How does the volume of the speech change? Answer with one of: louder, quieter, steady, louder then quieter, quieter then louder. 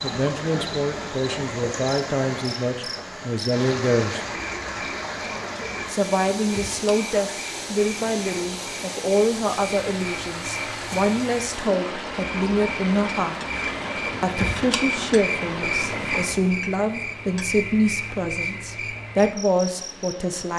steady.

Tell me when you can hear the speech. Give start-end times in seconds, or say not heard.
0.0-4.2, 5.8-13.4, 14.2-20.5.